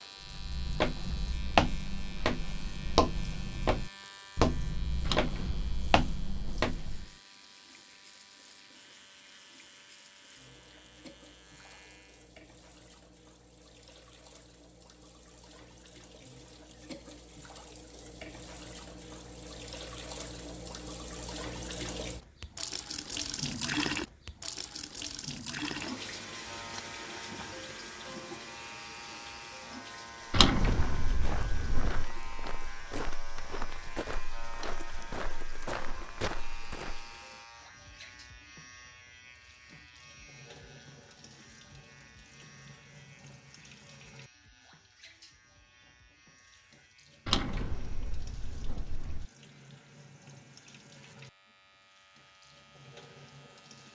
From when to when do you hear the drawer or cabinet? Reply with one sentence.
The drawer or cabinet can be heard from 5.0 to 7.0 s, from 30.3 to 32.1 s and from 47.2 to 49.2 s.